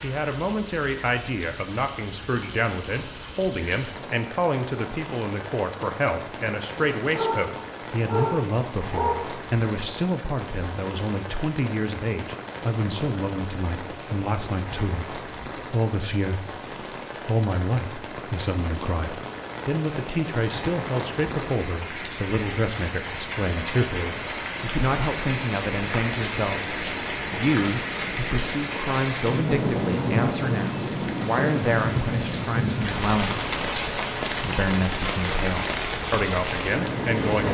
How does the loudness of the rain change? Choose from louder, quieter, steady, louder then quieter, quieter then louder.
louder.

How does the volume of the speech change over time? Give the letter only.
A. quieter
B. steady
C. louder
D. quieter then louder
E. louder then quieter
B.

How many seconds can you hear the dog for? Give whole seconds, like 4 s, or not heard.
2 s.